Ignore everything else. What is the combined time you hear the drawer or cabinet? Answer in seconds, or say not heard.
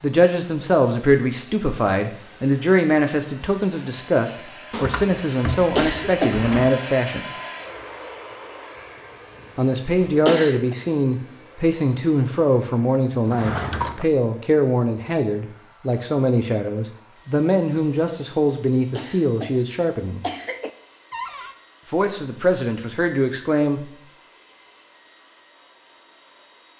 3 s.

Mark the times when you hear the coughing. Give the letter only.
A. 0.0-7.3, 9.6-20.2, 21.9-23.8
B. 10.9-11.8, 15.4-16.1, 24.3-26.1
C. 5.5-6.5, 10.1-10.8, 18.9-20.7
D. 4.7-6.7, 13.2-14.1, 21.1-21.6
C.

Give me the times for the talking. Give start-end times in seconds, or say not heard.
0.0-7.3, 9.6-20.2, 21.9-23.8.